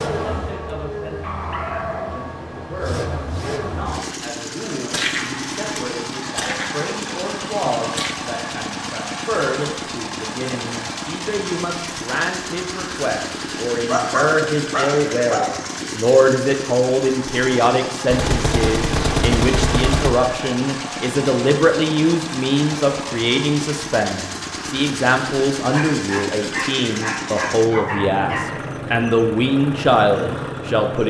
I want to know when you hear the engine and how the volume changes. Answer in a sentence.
You can hear the engine from 0.0 to 31.0 s, at a steady volume.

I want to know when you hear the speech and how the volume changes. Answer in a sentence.
The speech can be heard from 0.1 to 31.0 s, getting louder.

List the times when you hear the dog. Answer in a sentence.
You can hear the dog from 1.2 to 2.9 s, from 13.8 to 15.6 s and from 25.7 to 28.6 s.